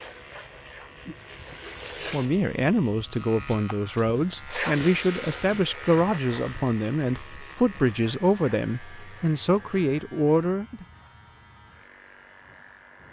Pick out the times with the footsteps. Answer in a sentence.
You can't hear the footsteps here.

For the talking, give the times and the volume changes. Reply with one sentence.
The talking can be heard from 2.1 to 10.8 s, at a steady volume.